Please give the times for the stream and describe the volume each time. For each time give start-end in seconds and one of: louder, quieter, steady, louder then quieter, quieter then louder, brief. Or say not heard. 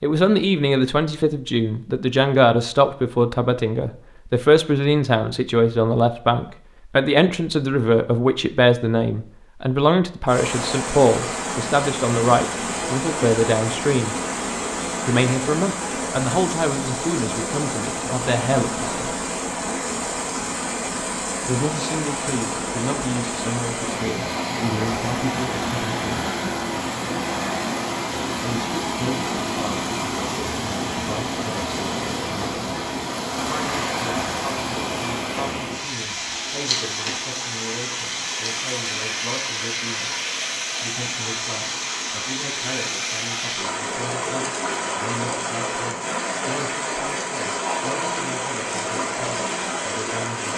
10.2-50.5 steady.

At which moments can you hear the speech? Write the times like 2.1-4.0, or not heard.
0.0-14.2, 15.1-19.1, 21.4-26.3, 28.4-32.8, 33.5-40.1, 40.8-50.5.